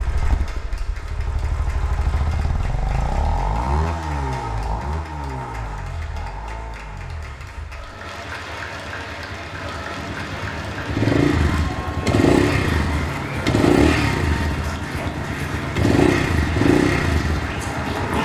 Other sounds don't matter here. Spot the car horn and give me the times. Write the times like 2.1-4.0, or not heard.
not heard.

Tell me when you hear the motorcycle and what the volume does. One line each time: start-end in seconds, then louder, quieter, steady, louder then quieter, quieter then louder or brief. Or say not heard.
0.0-18.1 quieter then louder.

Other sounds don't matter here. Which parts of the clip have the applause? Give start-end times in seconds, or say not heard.
0.0-18.1.